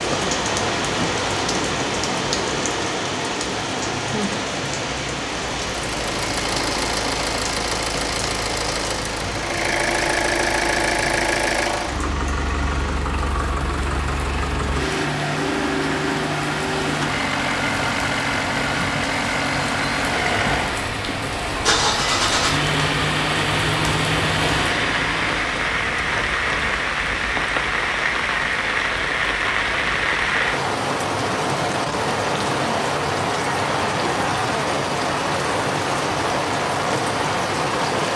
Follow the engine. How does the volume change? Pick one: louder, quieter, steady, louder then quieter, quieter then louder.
steady.